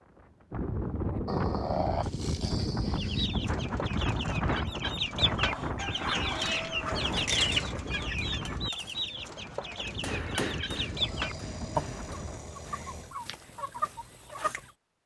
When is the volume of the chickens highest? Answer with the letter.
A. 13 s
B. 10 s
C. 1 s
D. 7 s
D.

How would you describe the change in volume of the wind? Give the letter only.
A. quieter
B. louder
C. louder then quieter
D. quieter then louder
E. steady
A.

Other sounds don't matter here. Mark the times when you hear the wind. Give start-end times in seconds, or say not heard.
0.1-12.6.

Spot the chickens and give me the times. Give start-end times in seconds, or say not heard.
3.0-14.7.